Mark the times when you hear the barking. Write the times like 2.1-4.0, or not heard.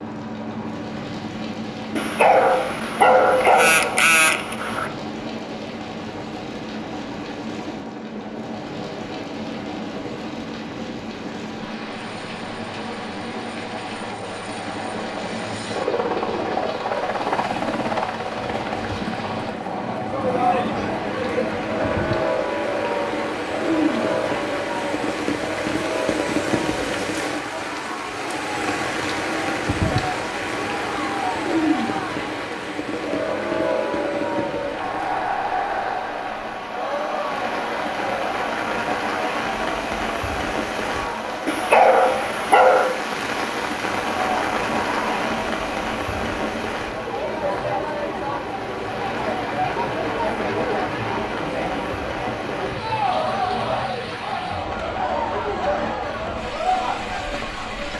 1.9-4.9, 41.5-43.0.